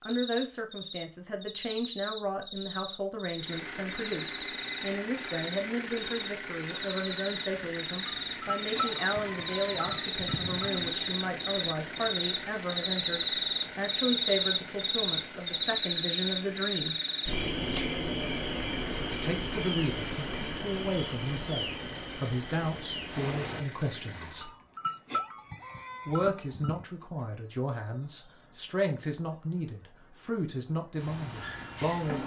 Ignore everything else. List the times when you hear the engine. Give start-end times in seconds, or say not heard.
3.4-24.6.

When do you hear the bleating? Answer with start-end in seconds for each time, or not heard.
8.1-10.9, 24.4-26.9.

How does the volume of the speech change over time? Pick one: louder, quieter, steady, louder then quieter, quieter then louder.
steady.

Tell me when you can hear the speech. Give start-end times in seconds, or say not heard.
0.0-16.9, 19.0-24.5, 26.1-32.2.